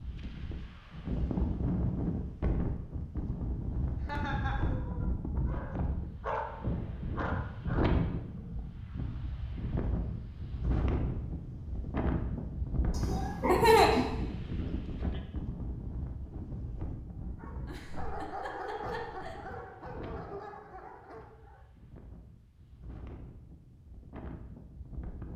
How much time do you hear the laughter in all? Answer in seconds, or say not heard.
4 s.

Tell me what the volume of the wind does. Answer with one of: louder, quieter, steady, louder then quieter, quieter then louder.
quieter.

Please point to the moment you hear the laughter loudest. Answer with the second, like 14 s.
14 s.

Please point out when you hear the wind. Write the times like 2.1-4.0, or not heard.
0.0-25.3.